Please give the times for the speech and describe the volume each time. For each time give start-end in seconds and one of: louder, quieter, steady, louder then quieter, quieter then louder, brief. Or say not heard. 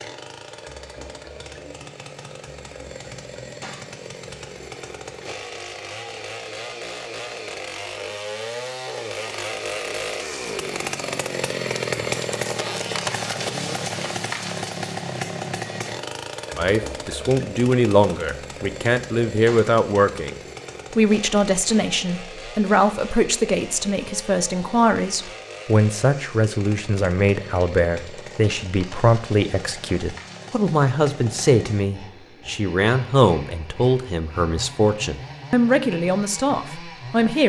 16.6-37.4 steady.